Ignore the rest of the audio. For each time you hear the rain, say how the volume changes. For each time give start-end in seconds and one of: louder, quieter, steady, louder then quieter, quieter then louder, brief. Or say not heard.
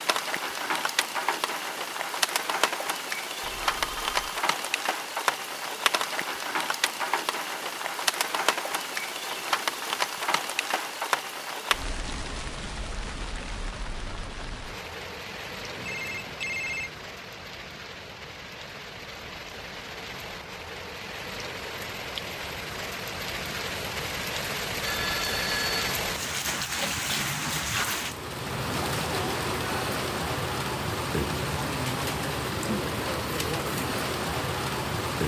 0.0-35.2 quieter then louder.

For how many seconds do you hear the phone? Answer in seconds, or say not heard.
3 s.